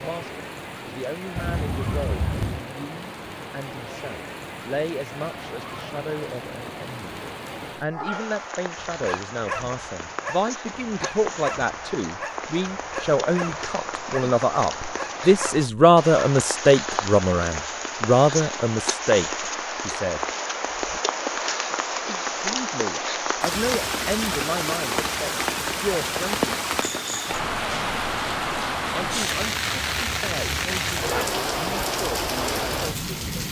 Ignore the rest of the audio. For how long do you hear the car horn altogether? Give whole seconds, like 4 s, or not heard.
3 s.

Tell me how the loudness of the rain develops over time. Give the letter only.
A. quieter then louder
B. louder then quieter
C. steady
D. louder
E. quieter
D.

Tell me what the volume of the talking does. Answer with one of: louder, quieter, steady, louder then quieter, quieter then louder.
louder then quieter.